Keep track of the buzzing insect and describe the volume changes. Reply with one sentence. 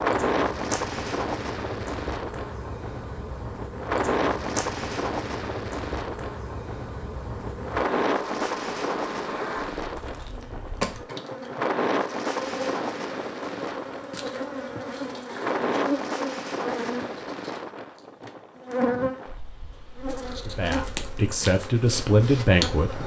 The loudness of the buzzing insect goes up.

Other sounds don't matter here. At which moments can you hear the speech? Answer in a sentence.
The speech can be heard from 20.4 to 23.0 s.